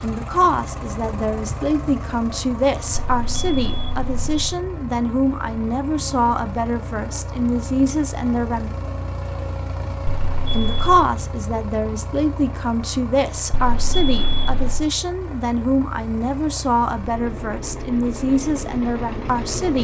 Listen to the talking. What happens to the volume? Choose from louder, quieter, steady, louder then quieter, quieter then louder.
steady.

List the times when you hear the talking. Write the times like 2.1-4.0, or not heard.
0.0-8.7, 10.5-19.7.